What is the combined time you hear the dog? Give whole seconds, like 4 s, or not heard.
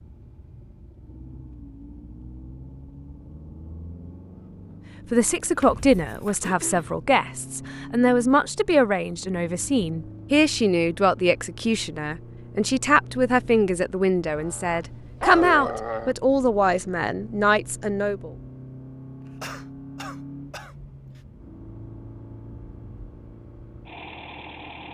2 s.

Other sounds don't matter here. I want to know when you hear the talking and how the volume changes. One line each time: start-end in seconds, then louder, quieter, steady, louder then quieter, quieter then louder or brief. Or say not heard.
5.1-18.3 steady.